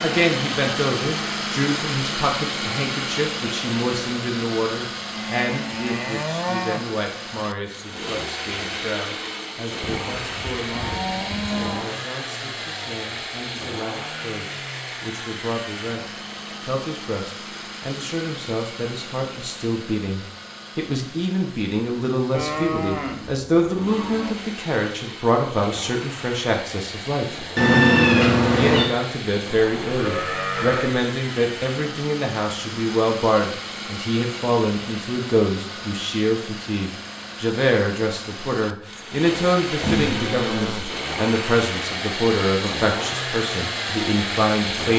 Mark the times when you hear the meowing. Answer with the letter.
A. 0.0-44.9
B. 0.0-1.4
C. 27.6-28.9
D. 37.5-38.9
C.